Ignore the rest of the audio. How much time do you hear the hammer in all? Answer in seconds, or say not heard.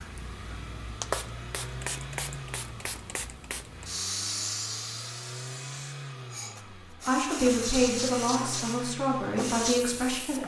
not heard.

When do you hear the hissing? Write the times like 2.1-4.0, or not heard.
0.0-10.4.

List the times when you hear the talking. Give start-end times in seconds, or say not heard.
6.8-10.4.